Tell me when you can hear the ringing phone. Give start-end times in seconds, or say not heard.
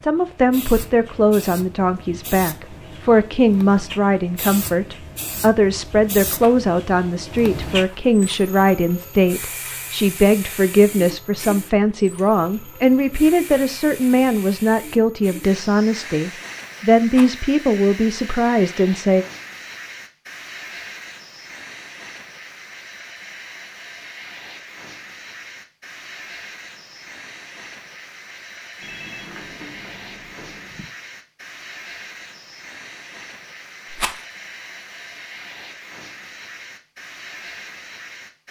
28.8-30.9.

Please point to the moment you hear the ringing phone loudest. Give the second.
29 s.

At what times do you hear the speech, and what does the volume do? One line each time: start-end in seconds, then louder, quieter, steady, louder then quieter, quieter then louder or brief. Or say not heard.
0.0-19.2 steady.